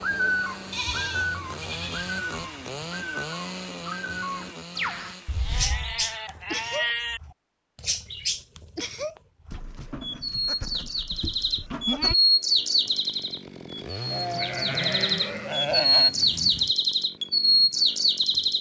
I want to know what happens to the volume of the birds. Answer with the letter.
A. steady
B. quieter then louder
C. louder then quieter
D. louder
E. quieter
D.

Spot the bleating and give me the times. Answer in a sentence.
The bleating can be heard from 0.7 to 2.9 s, from 5.2 to 7.2 s, from 9.5 to 12.2 s and from 14.1 to 16.8 s.